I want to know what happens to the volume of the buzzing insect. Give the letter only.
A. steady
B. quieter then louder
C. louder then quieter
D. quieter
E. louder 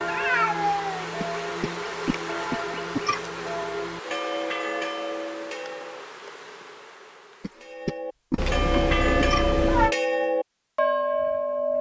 D.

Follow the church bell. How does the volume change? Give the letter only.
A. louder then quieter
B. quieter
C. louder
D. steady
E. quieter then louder
C.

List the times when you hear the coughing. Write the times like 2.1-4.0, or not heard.
1.2-3.2, 7.4-9.4.